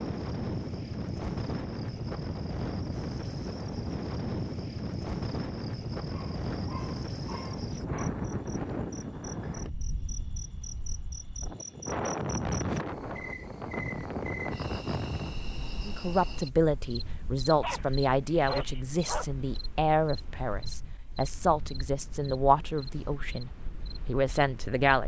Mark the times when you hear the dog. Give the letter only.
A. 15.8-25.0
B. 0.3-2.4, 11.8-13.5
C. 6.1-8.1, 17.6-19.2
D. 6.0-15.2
C.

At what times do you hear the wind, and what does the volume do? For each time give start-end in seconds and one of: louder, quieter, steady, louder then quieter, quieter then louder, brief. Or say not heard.
0.0-24.9 quieter.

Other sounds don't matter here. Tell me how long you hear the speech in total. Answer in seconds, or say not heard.
9 s.